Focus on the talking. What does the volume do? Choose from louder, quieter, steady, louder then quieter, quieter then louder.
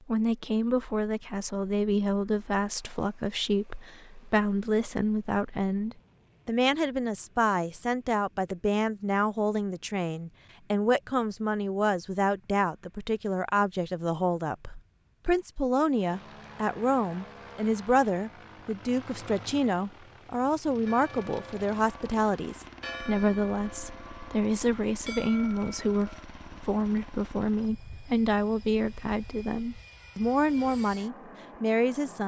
steady.